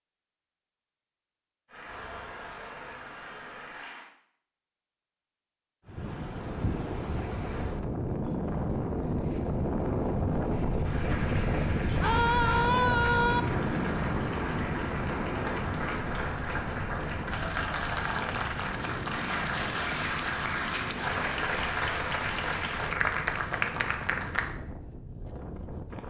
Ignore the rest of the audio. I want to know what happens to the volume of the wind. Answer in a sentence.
The loudness of the wind goes down.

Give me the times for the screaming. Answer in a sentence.
The screaming can be heard from 12.0 to 13.4 s.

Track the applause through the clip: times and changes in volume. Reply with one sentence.
The applause can be heard briefly from 1.6 to 4.1 s; and from 10.8 to 24.6 s, getting louder.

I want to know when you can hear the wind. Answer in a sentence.
You can hear the wind from 5.8 to 26.0 s.